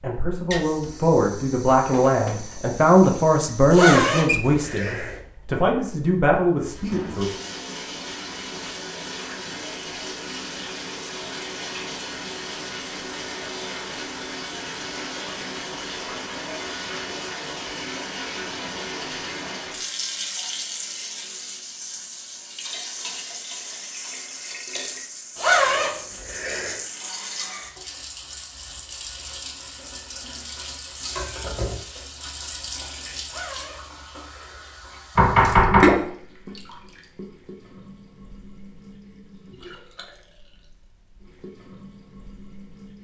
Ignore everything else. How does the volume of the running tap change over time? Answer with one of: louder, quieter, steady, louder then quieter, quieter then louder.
louder.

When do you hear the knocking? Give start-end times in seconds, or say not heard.
1.8-2.4, 35.1-35.9.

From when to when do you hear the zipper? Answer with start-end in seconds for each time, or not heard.
3.7-5.2, 25.4-26.8, 33.2-34.8.